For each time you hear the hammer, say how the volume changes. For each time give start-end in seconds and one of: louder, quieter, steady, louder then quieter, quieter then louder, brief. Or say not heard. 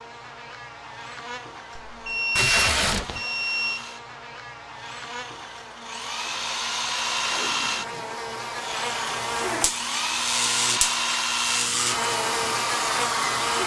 not heard.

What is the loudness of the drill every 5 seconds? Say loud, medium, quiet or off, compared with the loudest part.
quiet, loud, loud.